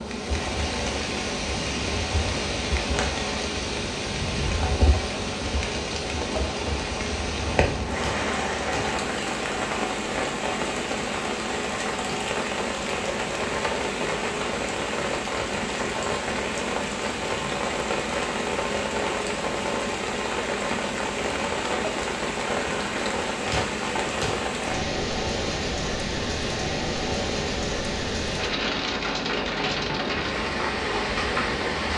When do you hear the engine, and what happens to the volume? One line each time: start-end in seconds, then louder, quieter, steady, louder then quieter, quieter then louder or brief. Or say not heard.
0.0-31.9 steady.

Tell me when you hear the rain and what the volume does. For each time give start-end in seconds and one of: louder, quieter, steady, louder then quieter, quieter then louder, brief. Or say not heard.
0.0-31.9 steady.